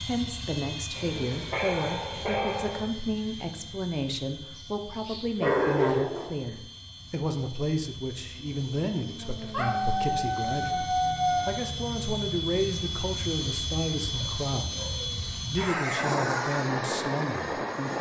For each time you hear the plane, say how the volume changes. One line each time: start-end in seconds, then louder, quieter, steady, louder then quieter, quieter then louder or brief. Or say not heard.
0.0-17.9 quieter then louder.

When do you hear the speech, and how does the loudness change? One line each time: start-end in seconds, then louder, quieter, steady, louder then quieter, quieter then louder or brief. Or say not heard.
0.1-17.9 steady.